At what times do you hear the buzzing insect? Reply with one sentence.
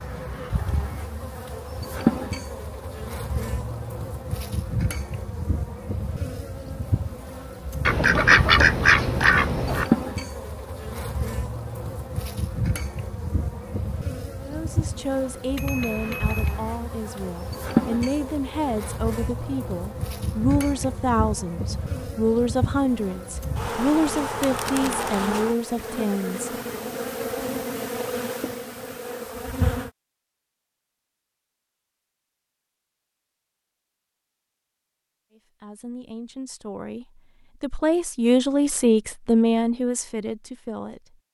The buzzing insect can be heard from 0.0 to 29.9 s.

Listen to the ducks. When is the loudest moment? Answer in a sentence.
The loudest moment of the ducks is at 8 seconds.